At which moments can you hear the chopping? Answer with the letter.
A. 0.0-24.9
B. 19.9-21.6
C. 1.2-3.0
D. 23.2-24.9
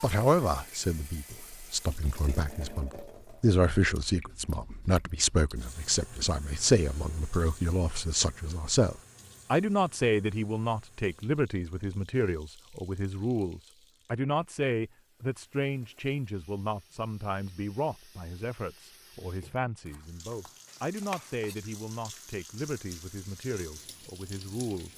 B.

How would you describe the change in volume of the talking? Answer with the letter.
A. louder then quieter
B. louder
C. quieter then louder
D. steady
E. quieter
E.